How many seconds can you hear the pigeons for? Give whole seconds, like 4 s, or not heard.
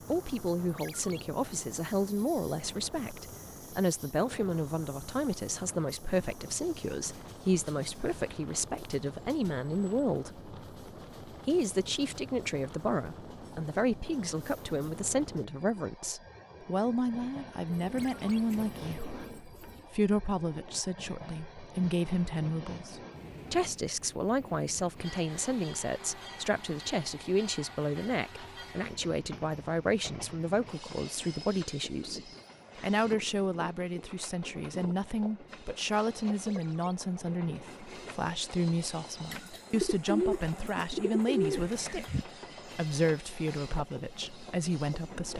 5 s.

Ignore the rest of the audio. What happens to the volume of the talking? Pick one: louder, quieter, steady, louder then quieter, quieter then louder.
steady.